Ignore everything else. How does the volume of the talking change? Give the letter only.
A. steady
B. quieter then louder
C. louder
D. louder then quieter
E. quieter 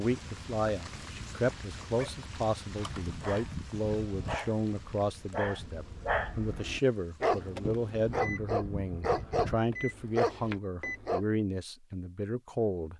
A.